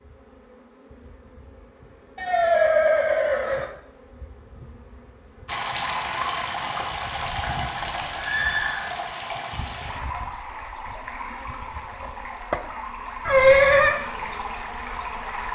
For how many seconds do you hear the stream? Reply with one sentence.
The stream can be heard for 10 seconds in total.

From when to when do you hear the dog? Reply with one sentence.
The dog can't be heard in this clip.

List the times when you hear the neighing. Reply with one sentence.
The neighing can be heard from 2.1 to 3.6 s, from 7.1 to 8.8 s and from 13.2 to 14.0 s.